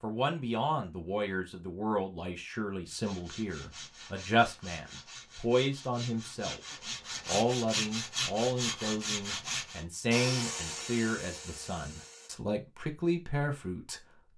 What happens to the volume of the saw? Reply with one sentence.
The volume of the saw goes up.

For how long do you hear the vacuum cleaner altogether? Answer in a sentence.
The vacuum cleaner can be heard for 2 seconds in total.